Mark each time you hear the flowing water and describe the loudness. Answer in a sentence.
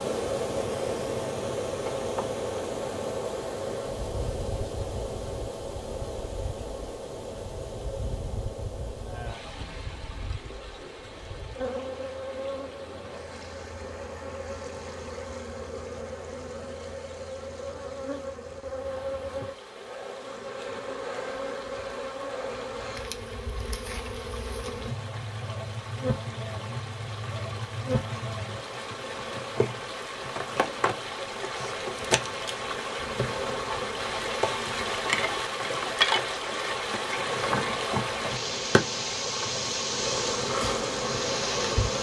The flowing water can be heard from 0.0 to 41.9 s, getting quieter then louder.